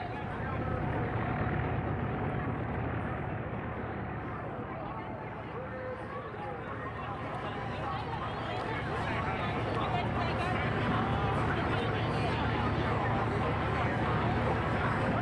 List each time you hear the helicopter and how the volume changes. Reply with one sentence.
You can hear the helicopter from 0.0 to 15.1 s, getting quieter then louder.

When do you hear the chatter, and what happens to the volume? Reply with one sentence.
You can hear the chatter from 0.0 to 15.1 s, getting louder.